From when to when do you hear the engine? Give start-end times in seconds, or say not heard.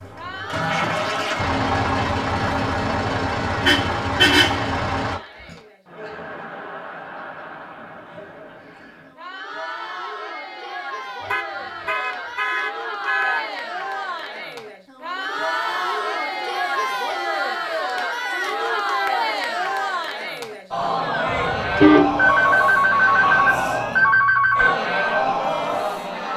0.0-5.2.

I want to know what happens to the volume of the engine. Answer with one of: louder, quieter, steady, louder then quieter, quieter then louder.
steady.